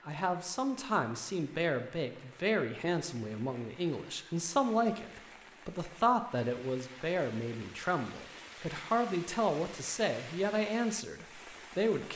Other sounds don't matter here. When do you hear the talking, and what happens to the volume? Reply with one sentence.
You can hear the talking from 0.1 to 12.1 s, at a steady volume.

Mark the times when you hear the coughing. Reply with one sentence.
The coughing can't be heard in this clip.